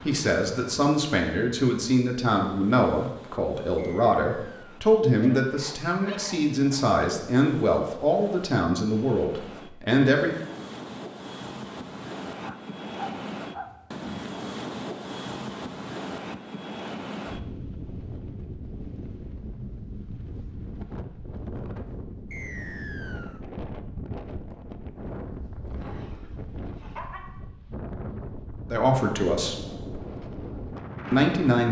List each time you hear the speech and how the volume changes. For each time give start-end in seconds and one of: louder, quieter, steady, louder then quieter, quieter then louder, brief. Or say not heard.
0.1-10.3 steady
28.7-29.6 brief
31.1-31.6 brief.